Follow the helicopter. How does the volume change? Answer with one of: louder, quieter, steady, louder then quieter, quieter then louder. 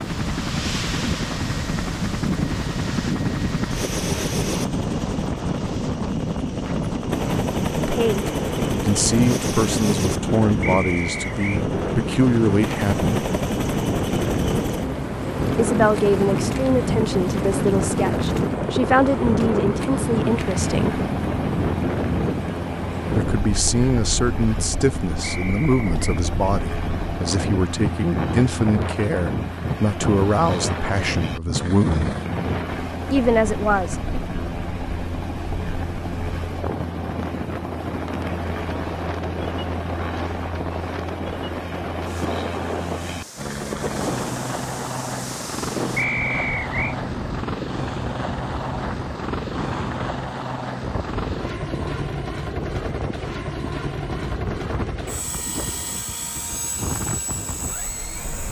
steady.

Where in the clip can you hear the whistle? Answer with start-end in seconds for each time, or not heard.
10.6-11.7, 25.2-26.2, 46.0-47.0.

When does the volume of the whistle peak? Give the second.
46 s.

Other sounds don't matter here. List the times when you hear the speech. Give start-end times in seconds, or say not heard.
7.8-13.2, 15.6-20.9, 23.1-32.1, 33.1-34.0.